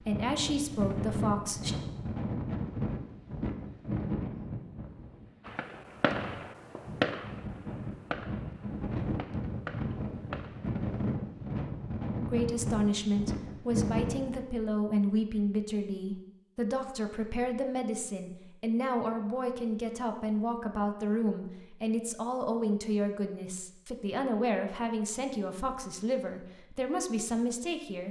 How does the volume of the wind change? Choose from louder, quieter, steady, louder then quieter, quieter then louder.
quieter then louder.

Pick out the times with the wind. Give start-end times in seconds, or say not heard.
0.0-14.4.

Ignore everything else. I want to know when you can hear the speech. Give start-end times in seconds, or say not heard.
0.1-1.8, 12.2-28.0.